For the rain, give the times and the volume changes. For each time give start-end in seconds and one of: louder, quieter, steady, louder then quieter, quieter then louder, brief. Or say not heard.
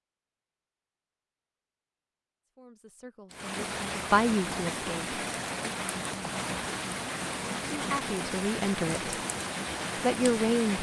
3.3-10.7 steady.